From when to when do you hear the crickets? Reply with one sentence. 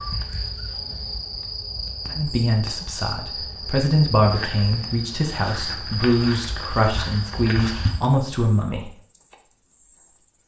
The crickets can be heard from 0.0 to 10.4 s.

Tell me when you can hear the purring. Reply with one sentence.
You can't hear the purring here.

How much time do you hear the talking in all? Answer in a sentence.
You can hear the talking for 7 seconds altogether.